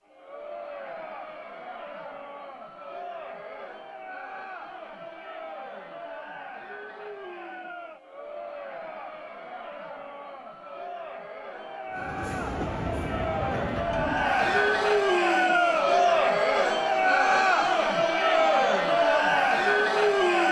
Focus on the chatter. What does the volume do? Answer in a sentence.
The volume of the chatter goes up.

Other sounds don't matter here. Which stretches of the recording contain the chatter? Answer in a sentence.
You can hear the chatter from 0.0 to 20.4 s.